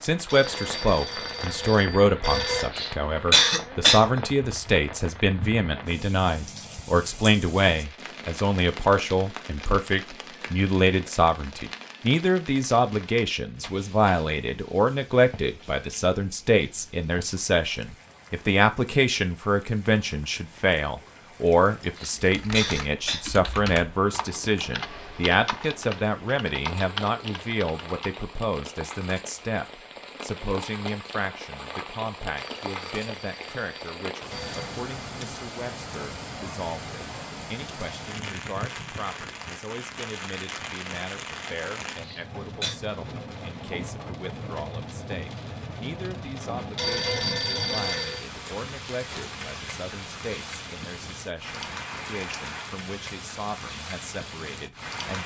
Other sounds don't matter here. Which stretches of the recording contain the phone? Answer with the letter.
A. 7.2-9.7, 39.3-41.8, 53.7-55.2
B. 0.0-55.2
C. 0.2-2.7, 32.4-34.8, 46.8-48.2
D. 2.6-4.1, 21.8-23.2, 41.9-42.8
C.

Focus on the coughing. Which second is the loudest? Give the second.
3 s.